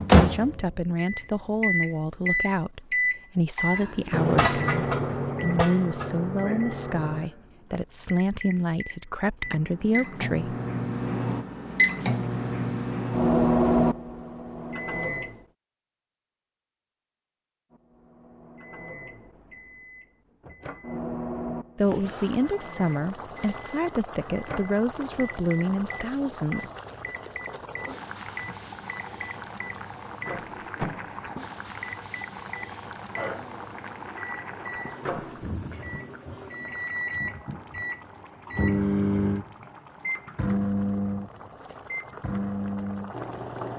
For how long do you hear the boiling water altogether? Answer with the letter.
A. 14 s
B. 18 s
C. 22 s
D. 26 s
C.